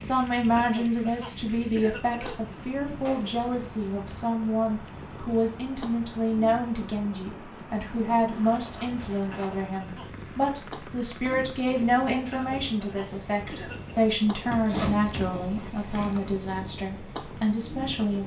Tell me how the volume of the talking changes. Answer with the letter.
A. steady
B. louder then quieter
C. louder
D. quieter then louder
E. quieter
A.